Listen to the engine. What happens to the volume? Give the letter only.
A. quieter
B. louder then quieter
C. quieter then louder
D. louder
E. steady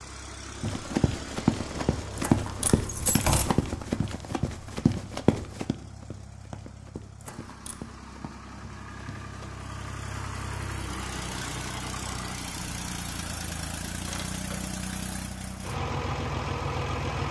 C.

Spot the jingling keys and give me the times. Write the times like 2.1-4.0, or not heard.
2.1-3.5, 7.2-7.8, 13.8-14.7.